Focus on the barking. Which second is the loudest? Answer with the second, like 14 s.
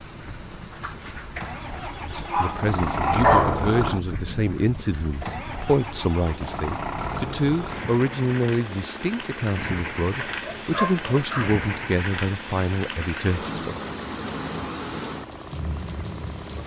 3 s.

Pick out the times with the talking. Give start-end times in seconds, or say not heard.
2.0-13.8.